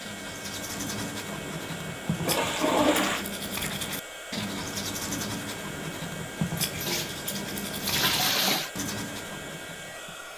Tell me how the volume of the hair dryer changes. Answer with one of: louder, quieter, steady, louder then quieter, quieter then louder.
steady.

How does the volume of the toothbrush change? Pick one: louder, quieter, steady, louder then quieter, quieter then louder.
steady.